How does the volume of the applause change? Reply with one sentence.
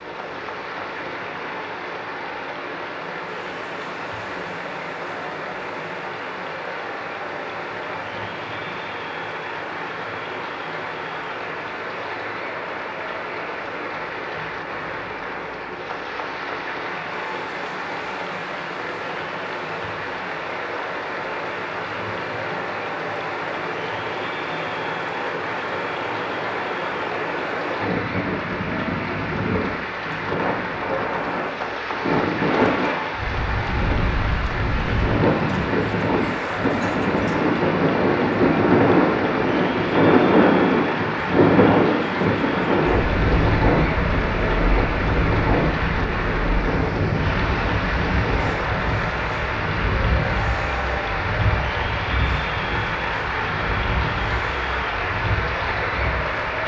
The volume of the applause goes up.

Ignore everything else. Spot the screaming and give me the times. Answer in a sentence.
You can't hear the screaming here.